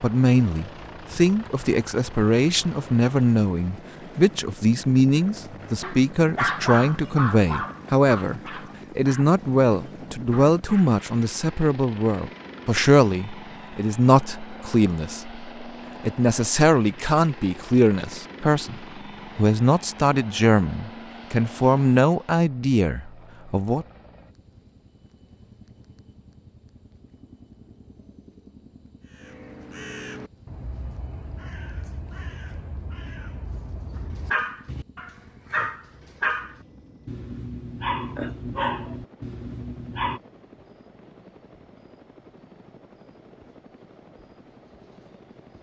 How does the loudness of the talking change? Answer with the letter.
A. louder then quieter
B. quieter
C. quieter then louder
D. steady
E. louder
D.